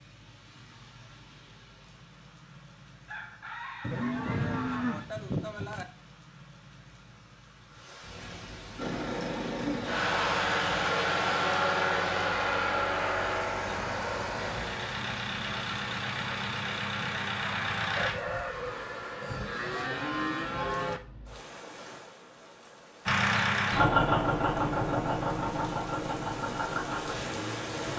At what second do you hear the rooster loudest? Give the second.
18 s.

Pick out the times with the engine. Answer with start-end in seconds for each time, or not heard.
8.8-18.1, 23.1-27.9.